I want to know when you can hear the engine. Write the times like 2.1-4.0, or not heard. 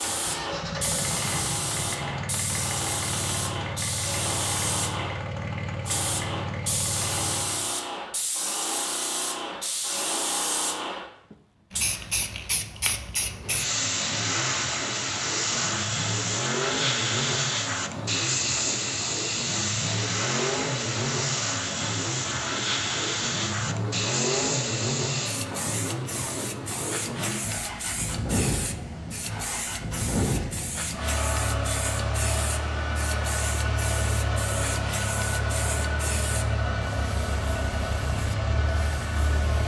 0.0-7.7, 13.3-39.6.